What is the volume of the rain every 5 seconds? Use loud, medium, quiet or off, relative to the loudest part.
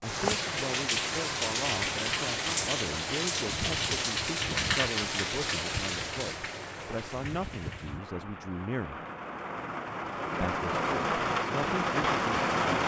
loud, medium, loud.